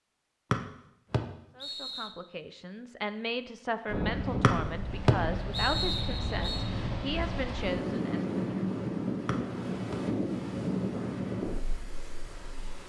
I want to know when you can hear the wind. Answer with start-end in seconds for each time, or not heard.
3.9-12.8.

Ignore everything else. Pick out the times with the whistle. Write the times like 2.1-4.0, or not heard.
0.5-2.1, 4.4-6.7, 9.2-9.9.